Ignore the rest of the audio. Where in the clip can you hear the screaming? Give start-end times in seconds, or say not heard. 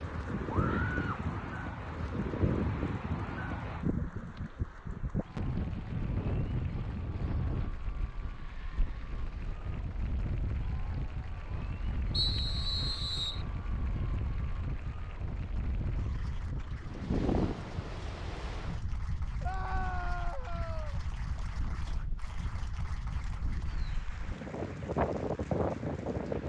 0.5-1.2, 19.4-21.0.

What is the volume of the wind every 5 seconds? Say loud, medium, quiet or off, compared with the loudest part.
loud, medium, medium, medium, medium, loud.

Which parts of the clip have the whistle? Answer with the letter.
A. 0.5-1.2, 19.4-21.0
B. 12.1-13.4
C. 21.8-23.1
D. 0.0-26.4
B.